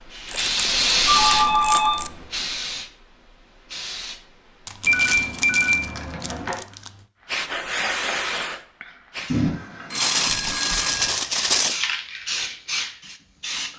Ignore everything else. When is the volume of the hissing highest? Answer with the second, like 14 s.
1 s.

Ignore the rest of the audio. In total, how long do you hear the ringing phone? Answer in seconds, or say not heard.
5 s.